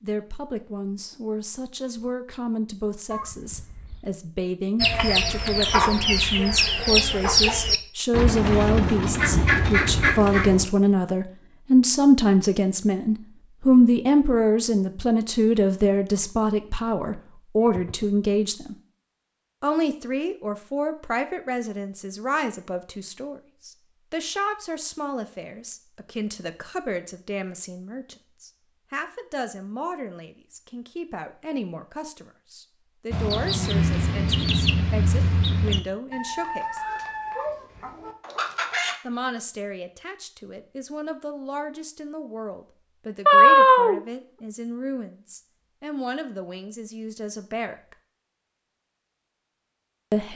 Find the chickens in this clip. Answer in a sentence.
You can hear the chickens from 4.8 to 10.7 s and from 33.1 to 39.0 s.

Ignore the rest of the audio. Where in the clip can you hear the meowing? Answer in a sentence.
You can hear the meowing from 3.1 to 4.2 s, from 17.6 to 18.1 s and from 43.2 to 44.0 s.